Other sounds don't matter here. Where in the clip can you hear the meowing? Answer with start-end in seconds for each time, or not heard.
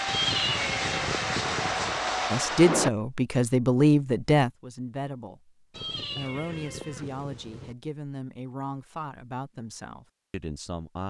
0.1-2.0, 5.7-7.8.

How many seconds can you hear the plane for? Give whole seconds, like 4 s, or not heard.
3 s.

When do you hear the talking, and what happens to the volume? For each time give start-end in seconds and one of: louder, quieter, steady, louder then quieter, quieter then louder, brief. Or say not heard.
2.3-11.0 quieter.